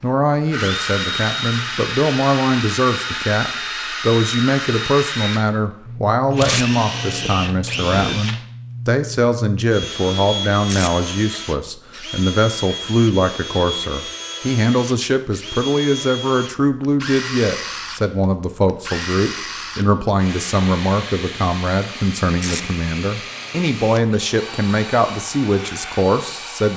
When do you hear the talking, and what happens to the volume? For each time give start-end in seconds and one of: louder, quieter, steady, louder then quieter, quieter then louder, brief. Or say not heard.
0.0-26.7 steady.